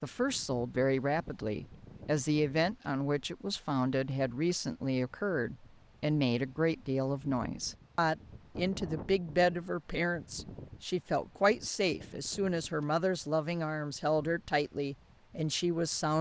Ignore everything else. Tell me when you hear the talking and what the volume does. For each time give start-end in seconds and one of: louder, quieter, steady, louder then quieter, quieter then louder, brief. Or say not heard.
0.0-16.1 steady.